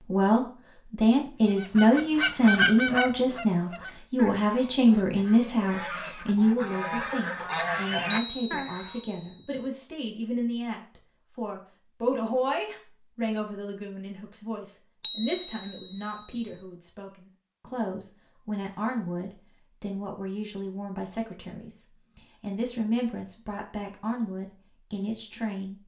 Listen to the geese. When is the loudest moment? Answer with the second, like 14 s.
3 s.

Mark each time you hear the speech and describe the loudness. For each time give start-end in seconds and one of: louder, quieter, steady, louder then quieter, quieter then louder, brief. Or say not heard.
0.1-25.8 quieter.